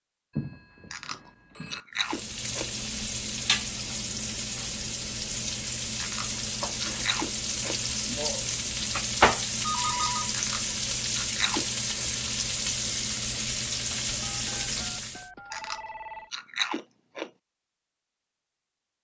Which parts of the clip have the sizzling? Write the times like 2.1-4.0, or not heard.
1.9-15.3.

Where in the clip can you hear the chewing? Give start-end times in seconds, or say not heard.
0.9-2.7, 6.0-7.8, 10.3-12.1, 15.5-17.3.